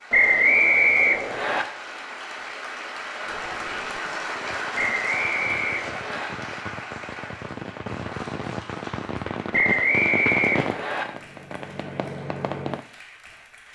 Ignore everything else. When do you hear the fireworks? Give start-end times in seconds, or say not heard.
3.2-12.8.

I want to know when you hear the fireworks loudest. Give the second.
10 s.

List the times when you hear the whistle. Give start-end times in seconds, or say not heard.
0.1-1.6, 4.8-6.3, 9.5-11.1.